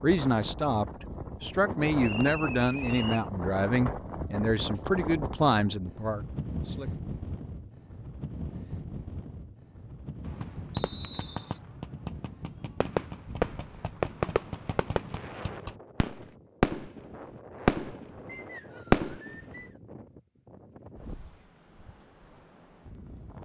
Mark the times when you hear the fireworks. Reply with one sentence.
The fireworks can be heard from 10.2 to 19.6 s.